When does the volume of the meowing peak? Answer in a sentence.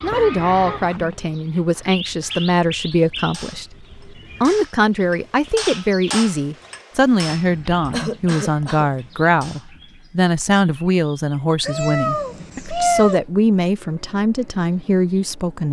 The loudest moment of the meowing is at 13 seconds.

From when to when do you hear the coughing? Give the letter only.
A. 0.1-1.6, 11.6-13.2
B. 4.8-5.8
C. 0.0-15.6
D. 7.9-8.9
D.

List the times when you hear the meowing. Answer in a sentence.
You can hear the meowing from 0.1 to 1.6 s and from 11.6 to 13.2 s.